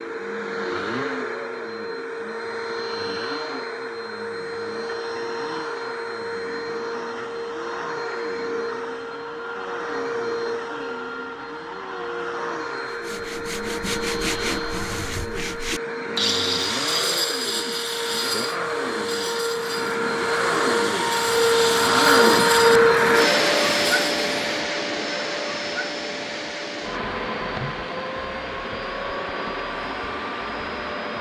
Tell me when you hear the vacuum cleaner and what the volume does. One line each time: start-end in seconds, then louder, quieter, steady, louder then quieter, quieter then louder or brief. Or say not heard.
0.0-31.1 louder then quieter.